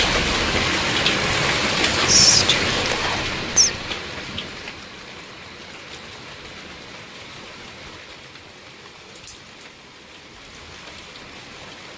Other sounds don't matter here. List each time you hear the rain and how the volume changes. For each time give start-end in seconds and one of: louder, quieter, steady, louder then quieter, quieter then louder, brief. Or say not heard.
0.0-11.9 quieter.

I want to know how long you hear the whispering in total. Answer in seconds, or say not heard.
2 s.